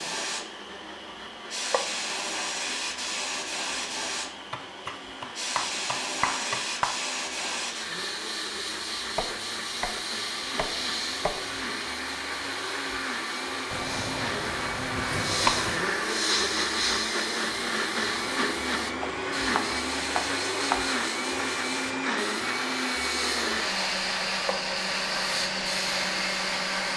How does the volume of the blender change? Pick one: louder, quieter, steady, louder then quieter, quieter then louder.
louder.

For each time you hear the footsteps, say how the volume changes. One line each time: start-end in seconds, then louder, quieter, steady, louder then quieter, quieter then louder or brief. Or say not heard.
not heard.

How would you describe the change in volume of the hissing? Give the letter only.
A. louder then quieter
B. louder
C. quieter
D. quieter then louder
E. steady
E.